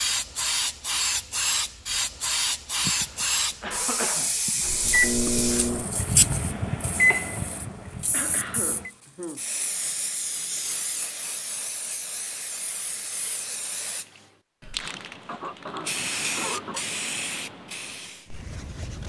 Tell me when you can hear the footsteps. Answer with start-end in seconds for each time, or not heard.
not heard.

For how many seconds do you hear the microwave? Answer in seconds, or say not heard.
4 s.